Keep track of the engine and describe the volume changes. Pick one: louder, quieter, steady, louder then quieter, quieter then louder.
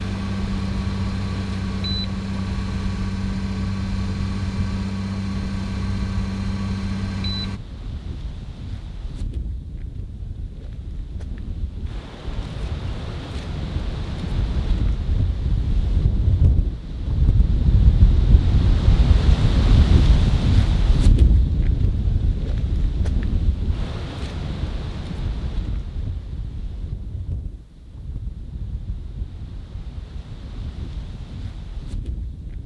steady.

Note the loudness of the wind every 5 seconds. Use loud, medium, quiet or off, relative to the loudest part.
quiet, quiet, medium, loud, loud, quiet, quiet.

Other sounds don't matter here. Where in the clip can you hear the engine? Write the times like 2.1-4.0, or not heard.
0.0-7.6.